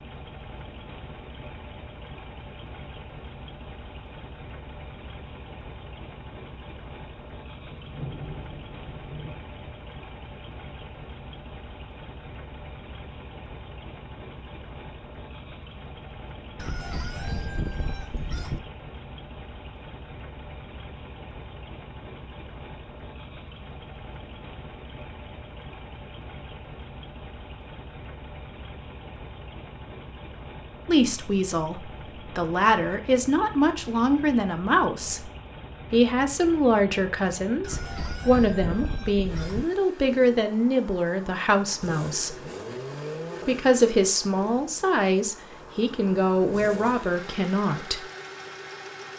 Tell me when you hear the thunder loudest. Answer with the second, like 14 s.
8 s.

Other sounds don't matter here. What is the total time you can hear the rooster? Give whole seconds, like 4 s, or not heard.
4 s.